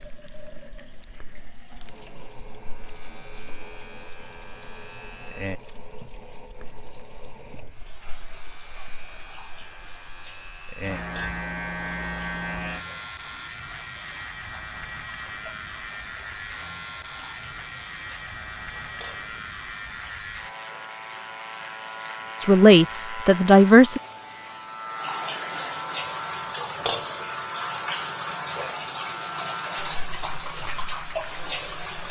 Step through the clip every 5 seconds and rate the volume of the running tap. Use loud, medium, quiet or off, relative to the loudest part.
quiet, quiet, quiet, quiet, quiet, loud, loud.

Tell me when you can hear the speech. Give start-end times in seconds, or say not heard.
22.4-24.0.